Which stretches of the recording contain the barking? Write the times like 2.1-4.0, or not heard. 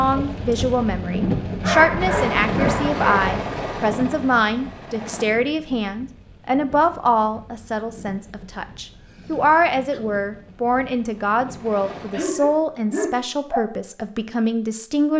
1.6-3.4, 12.1-13.7.